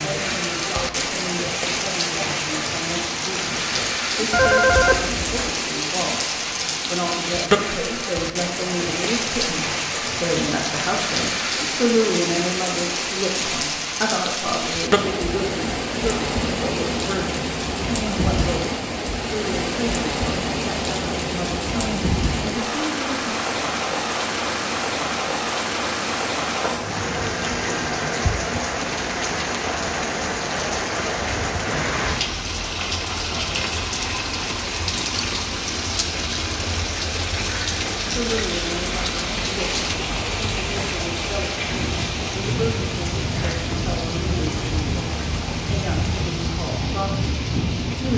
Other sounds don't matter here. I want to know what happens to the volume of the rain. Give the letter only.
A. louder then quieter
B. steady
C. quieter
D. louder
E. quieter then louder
B.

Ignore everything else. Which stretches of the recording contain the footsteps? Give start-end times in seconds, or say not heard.
not heard.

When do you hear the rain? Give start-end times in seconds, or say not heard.
0.0-48.1.